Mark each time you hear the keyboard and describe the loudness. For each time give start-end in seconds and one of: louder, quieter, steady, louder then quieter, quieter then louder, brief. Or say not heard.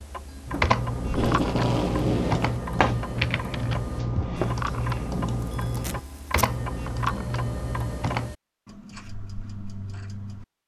0.5-8.3 steady.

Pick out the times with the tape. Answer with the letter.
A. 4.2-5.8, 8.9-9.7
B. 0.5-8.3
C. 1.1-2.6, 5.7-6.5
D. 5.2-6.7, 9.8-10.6
C.